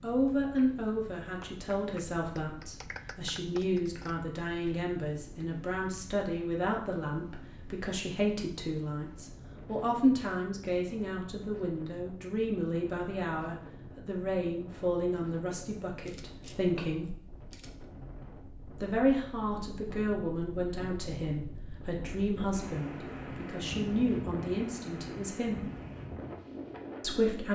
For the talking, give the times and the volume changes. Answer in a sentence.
You can hear the talking from 0.0 to 17.2 s, at a steady volume; from 18.8 to 25.6 s, at a steady volume; and briefly from 27.0 to 27.5 s.